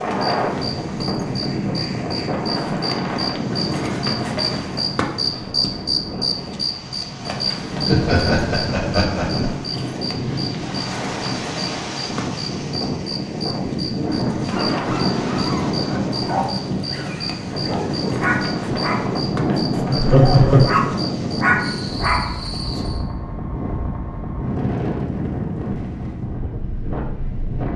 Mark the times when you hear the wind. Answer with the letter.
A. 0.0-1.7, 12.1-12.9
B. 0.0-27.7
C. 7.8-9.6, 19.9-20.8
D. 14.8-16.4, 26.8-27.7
B.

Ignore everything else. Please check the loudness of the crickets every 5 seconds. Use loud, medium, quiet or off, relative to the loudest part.
loud, loud, medium, medium, medium, off.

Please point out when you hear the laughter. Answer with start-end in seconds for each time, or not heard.
7.8-9.6, 19.9-20.8.